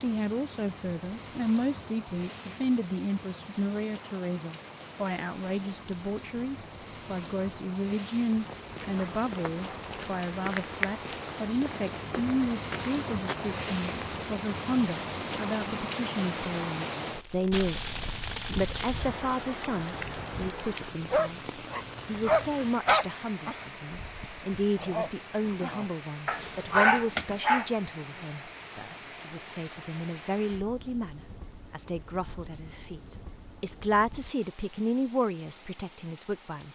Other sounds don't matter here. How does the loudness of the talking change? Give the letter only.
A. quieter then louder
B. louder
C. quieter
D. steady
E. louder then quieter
D.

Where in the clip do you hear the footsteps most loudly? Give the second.
11 s.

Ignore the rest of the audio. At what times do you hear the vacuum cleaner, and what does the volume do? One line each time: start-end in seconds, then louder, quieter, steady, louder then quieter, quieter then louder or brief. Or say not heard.
not heard.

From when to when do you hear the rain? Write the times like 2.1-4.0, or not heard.
0.0-36.7.